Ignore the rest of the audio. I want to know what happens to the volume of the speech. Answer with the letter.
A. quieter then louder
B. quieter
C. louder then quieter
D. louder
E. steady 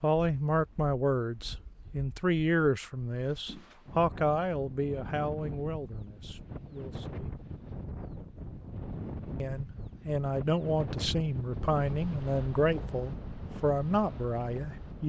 A.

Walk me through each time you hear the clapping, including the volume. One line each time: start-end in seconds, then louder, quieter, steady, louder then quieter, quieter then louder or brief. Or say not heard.
not heard.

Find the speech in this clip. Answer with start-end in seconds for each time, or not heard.
0.0-7.3, 9.4-15.0.